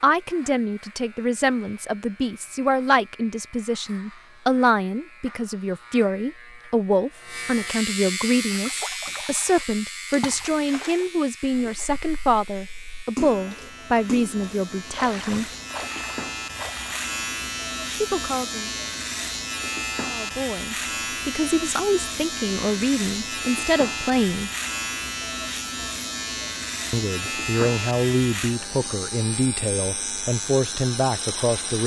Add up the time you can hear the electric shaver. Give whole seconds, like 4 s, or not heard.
32 s.